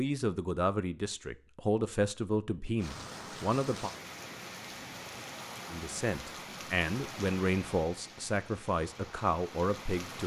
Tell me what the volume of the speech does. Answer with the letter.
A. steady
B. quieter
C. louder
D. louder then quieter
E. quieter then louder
A.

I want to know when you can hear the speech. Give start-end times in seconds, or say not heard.
0.0-3.9, 5.7-10.2.